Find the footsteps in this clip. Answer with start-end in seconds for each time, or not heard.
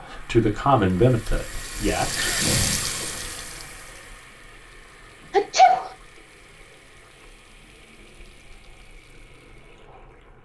not heard.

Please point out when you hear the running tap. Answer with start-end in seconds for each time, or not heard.
0.0-10.3.